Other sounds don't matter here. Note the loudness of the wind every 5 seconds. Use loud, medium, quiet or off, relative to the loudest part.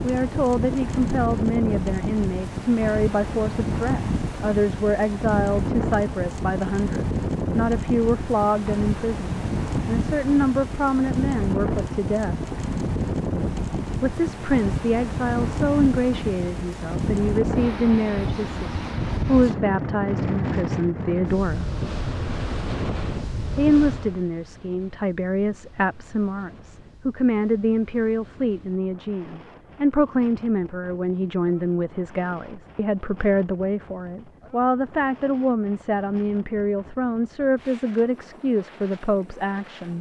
loud, loud, loud, loud, loud, quiet, quiet, quiet.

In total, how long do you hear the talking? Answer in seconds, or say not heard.
36 s.